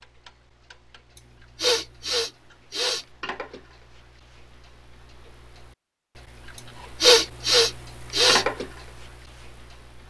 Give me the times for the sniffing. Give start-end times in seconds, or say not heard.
1.6-3.0, 7.0-8.4.